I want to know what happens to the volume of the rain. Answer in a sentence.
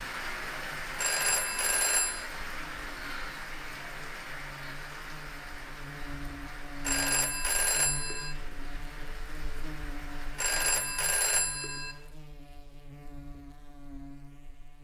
The loudness of the rain goes down.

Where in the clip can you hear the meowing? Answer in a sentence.
You can't hear the meowing here.